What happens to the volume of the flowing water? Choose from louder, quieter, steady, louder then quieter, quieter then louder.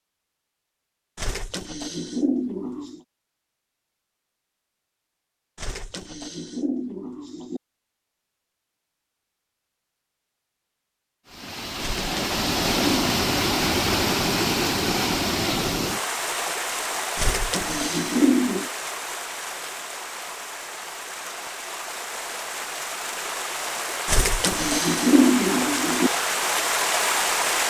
quieter then louder.